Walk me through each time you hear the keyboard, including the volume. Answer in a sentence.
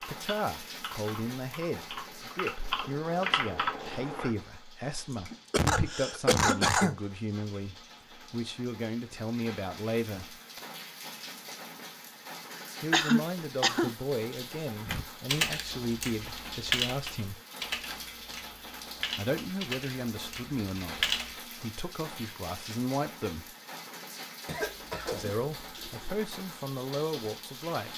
The keyboard can be heard from 0.0 to 4.3 s, getting louder; and from 14.8 to 21.4 s, getting quieter.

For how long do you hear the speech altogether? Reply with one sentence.
You can hear the speech for 22 seconds altogether.